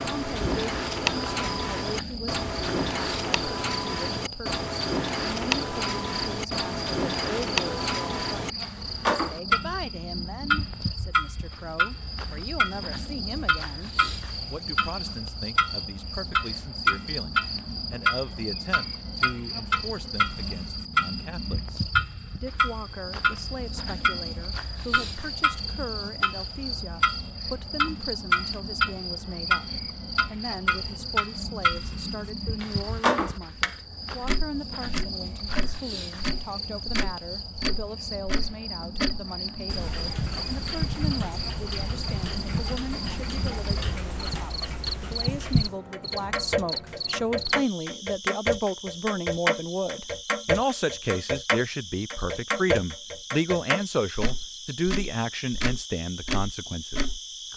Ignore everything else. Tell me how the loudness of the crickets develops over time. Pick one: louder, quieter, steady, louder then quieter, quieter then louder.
steady.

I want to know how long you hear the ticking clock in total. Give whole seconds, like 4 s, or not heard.
57 s.